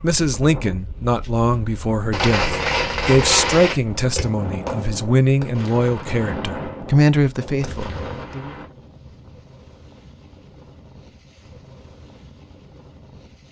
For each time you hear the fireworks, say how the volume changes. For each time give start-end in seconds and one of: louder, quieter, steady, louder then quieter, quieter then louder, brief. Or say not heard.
2.1-8.7 quieter.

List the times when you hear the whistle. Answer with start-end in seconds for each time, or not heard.
not heard.